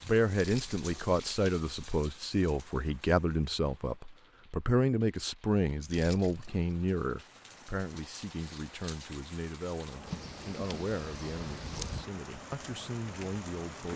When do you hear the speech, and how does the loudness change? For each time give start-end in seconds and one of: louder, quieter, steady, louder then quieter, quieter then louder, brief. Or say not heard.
0.0-13.9 quieter.